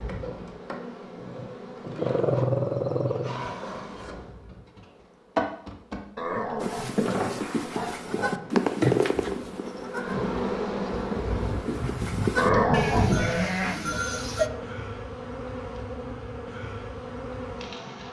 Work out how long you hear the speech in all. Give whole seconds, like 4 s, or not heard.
not heard.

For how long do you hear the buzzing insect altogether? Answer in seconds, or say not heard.
18 s.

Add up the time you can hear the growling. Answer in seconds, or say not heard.
5 s.